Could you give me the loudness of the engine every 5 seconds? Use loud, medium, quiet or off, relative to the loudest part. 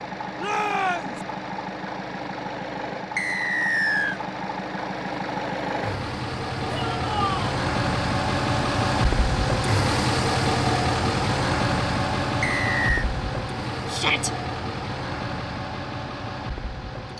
medium, loud, loud, medium.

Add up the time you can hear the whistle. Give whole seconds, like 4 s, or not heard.
2 s.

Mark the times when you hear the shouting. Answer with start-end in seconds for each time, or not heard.
0.3-1.2, 6.7-7.6, 13.9-14.3.